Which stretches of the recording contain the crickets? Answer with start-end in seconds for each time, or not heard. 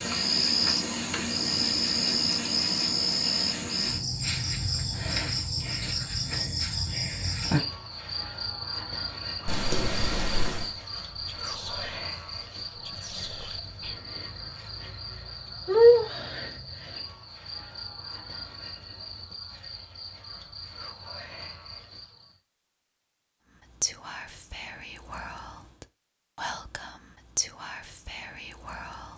0.0-22.4.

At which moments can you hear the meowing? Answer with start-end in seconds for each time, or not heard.
9.4-10.8.